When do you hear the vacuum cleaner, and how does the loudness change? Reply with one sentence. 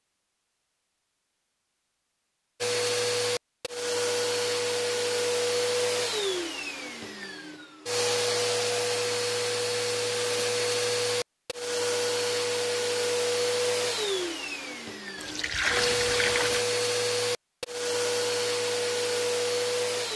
You can hear the vacuum cleaner from 2.6 to 20.1 s, at a steady volume.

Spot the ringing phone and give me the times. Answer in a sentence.
The ringing phone can't be heard in this clip.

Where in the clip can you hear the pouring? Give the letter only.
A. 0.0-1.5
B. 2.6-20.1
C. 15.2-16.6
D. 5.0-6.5
C.